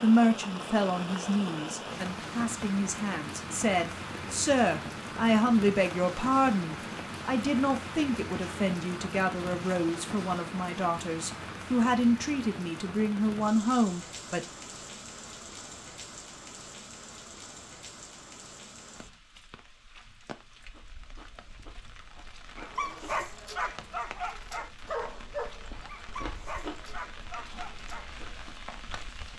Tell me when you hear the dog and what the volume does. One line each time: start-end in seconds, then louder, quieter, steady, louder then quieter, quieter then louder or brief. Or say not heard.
22.6-28.1 quieter.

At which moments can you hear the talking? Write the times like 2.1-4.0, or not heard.
0.0-14.4.